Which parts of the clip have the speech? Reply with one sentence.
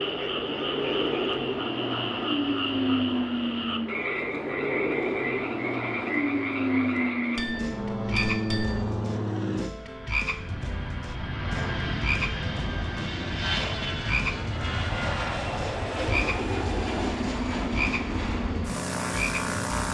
You can't hear the speech here.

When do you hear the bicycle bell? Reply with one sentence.
You can hear the bicycle bell from 7.3 to 8.8 s.